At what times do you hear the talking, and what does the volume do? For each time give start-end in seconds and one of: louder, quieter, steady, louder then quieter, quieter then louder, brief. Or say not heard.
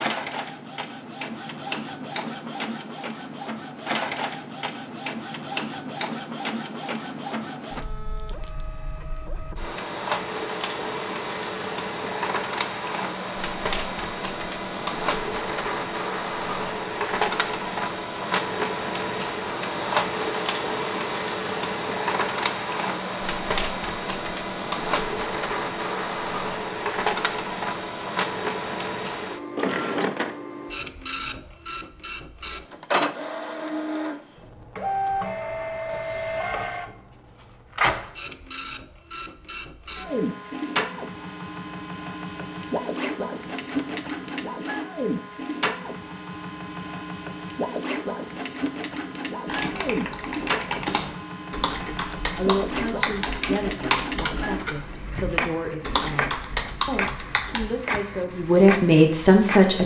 52.4-59.8 louder.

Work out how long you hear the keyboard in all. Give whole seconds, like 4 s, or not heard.
8 s.